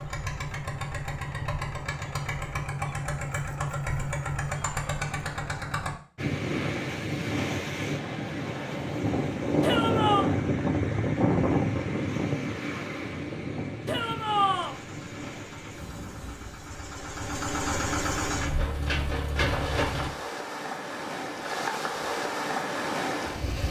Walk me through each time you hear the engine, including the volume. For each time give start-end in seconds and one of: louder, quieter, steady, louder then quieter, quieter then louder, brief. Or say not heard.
0.0-6.0 steady
14.6-20.1 louder.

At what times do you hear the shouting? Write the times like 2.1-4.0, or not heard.
9.6-10.3, 13.8-14.8.